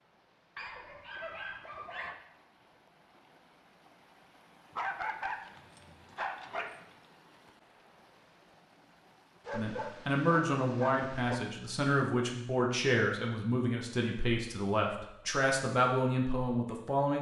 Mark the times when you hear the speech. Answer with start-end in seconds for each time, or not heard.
9.5-17.1.